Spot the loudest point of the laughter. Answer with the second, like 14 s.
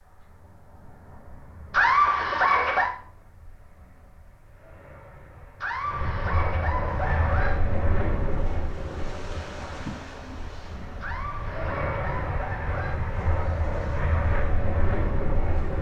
2 s.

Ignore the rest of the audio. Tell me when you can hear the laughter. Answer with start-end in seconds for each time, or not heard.
1.7-3.0, 5.6-7.6, 11.0-13.0.